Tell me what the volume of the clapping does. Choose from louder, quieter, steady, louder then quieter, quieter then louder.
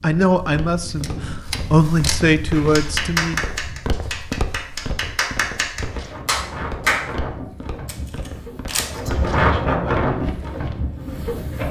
quieter then louder.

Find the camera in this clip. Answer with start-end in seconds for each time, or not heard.
0.8-2.2, 7.8-9.0.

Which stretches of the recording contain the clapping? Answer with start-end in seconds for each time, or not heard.
2.5-7.1.